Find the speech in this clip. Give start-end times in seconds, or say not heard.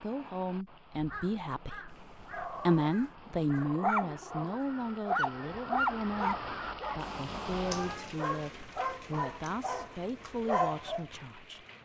0.0-11.7.